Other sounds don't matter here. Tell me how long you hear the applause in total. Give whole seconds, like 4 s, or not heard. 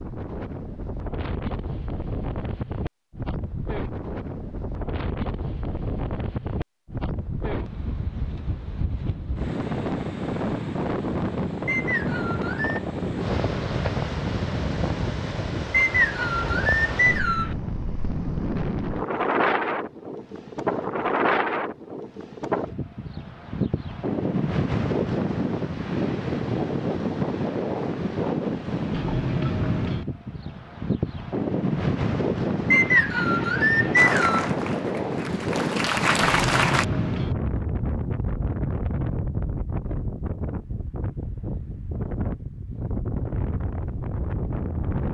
3 s.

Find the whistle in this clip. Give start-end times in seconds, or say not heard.
11.7-12.8, 15.7-17.6, 32.7-34.5.